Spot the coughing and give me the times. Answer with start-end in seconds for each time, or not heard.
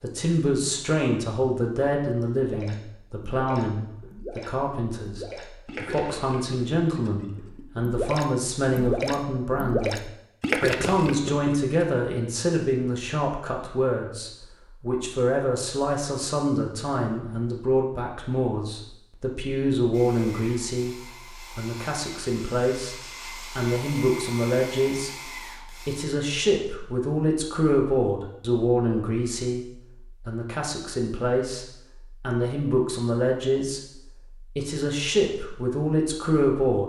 not heard.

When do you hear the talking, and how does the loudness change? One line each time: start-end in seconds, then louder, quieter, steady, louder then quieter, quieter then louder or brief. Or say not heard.
0.0-33.8 steady
34.4-36.8 brief.